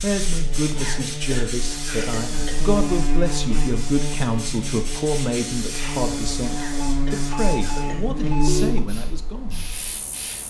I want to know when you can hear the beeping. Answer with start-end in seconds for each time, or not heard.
6.8-8.8.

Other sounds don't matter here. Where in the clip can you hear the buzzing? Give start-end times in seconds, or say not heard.
0.0-10.4.